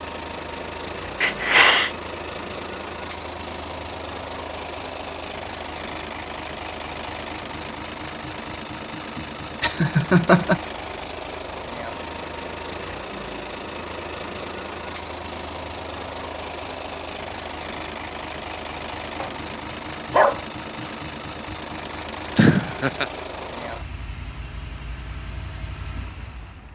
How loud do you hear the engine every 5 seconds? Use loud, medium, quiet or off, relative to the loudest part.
loud, loud, loud, loud, loud, medium.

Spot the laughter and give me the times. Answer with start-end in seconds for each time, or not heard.
1.2-1.9, 9.2-10.6, 22.4-23.1.